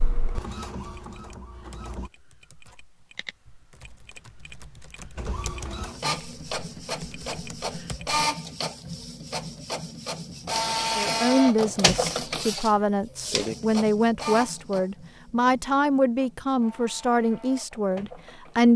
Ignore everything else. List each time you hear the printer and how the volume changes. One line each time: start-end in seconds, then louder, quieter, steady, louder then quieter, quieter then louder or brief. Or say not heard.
0.0-2.1 brief
5.2-18.7 louder then quieter.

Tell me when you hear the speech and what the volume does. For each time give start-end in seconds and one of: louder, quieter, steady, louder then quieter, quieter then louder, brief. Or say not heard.
10.9-18.7 steady.